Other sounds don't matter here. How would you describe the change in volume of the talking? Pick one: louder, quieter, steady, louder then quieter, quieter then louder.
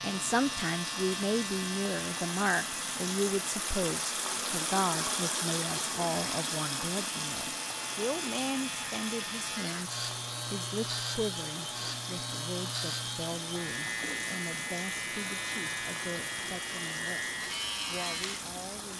quieter.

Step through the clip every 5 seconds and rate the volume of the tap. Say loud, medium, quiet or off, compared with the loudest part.
loud, loud, medium, medium.